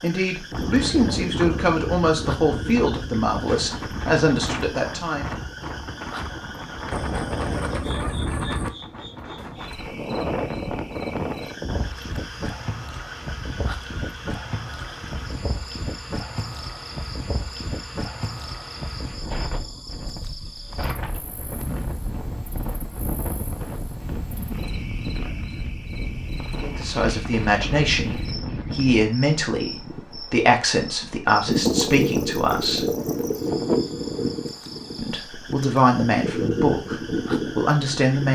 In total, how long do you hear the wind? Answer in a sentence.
You can hear the wind for 38 seconds altogether.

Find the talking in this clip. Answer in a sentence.
The talking can be heard from 0.0 to 5.2 s, from 26.6 to 32.9 s and from 35.0 to 38.3 s.